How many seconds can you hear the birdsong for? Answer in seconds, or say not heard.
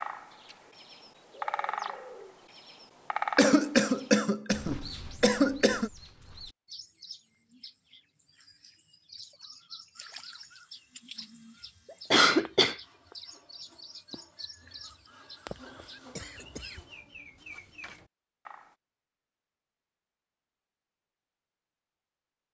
19 s.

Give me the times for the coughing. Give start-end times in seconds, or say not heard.
3.4-5.9, 12.1-12.8, 15.6-16.9.